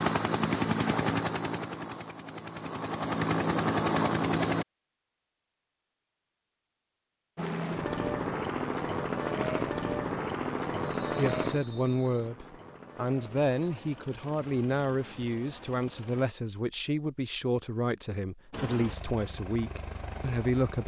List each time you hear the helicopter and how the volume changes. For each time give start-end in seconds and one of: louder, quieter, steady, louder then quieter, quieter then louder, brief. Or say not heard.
0.0-4.7 quieter then louder
7.3-16.3 quieter
18.5-20.8 brief.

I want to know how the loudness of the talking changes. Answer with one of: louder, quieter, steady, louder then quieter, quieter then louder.
steady.